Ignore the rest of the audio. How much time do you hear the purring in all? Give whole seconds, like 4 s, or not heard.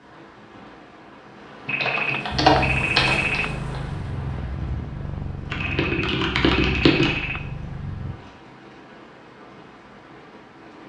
6 s.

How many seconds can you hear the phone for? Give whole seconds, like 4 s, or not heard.
4 s.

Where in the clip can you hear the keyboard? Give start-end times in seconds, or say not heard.
1.6-3.8, 5.5-7.1.